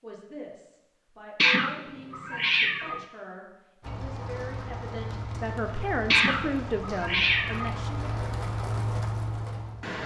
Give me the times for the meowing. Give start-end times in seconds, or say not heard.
1.4-3.0, 6.1-7.8.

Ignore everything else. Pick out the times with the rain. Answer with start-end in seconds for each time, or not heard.
3.8-10.0.